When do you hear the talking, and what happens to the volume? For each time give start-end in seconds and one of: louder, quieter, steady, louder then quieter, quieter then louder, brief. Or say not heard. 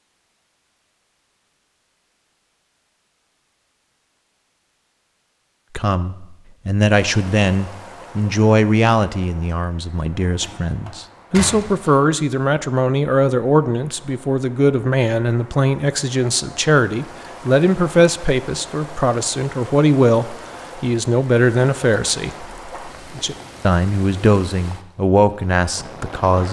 5.8-26.4 steady.